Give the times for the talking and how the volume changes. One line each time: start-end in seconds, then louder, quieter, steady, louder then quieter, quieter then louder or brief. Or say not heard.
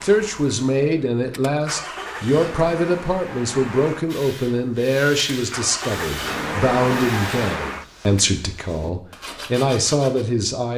0.0-10.7 steady.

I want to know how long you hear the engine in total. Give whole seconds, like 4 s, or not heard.
8 s.